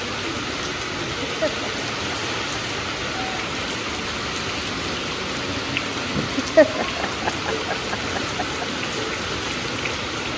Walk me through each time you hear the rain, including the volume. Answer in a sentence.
The rain can be heard from 0.0 to 10.3 s, at a steady volume.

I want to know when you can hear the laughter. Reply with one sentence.
You can hear the laughter from 1.0 to 2.8 s and from 6.2 to 8.7 s.